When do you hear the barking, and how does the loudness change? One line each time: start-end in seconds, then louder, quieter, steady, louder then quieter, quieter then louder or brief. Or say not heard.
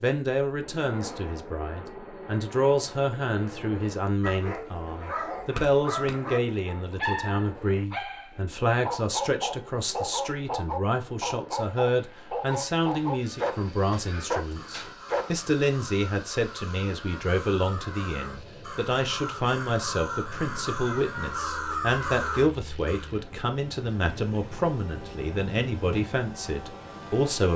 4.2-15.5 steady.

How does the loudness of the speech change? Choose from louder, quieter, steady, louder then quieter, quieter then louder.
steady.